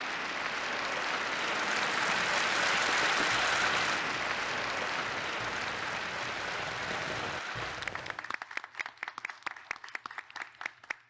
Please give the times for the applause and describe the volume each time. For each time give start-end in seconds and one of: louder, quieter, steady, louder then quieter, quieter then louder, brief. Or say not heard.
0.0-11.0 quieter.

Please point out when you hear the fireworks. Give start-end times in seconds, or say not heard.
2.8-8.3.